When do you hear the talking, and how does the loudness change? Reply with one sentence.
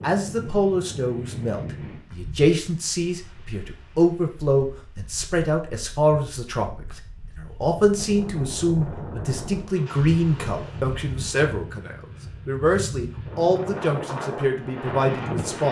The talking can be heard from 0.0 to 15.6 s, at a steady volume.